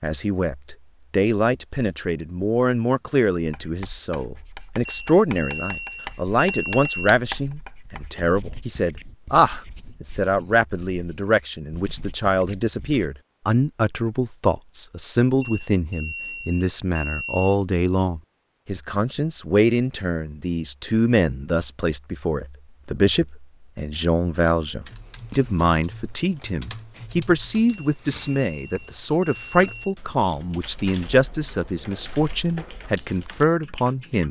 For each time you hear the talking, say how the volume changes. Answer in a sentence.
The talking can be heard from 0.0 to 34.2 s, at a steady volume.